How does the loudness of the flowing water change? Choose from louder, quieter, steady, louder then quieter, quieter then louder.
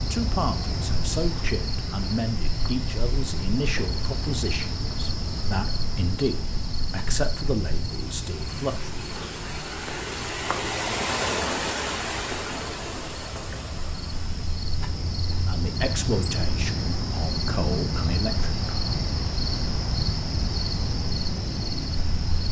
louder then quieter.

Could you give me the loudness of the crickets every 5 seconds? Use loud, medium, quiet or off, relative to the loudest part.
loud, medium, medium, loud, loud.